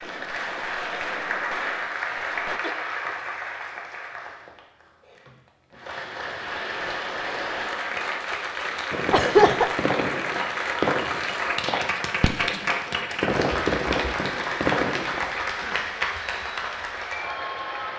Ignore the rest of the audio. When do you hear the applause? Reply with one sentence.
You can hear the applause from 0.0 to 17.9 s.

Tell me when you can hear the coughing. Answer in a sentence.
The coughing can be heard from 2.6 to 3.0 s and from 9.1 to 9.7 s.